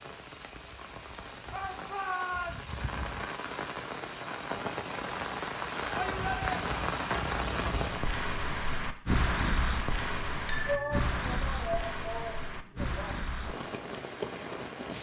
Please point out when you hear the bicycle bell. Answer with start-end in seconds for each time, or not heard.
10.4-11.0.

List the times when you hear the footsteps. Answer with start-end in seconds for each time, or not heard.
not heard.